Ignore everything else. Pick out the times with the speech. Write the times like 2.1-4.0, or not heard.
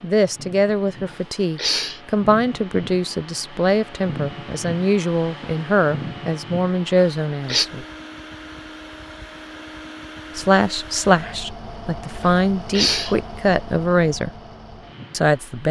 0.0-7.8, 10.3-14.3, 15.1-15.6.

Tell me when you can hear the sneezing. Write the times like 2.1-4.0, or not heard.
1.1-2.0, 7.0-7.7, 12.2-13.2.